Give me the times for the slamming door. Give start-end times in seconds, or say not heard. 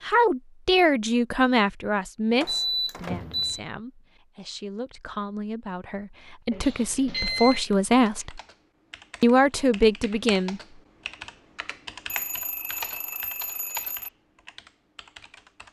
2.4-3.6.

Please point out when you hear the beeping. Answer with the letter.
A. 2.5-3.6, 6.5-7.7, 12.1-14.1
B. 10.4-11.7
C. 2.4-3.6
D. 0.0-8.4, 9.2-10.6
A.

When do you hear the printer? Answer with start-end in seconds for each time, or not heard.
not heard.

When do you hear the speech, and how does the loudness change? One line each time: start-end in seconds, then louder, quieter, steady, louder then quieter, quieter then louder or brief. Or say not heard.
0.0-8.4 quieter then louder
9.2-10.6 brief.